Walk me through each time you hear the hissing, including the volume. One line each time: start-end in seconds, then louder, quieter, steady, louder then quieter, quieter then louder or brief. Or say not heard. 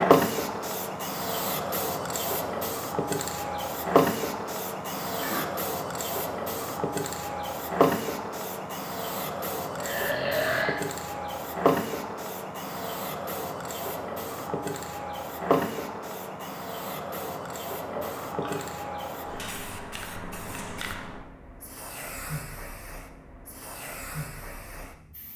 0.0-25.3 quieter.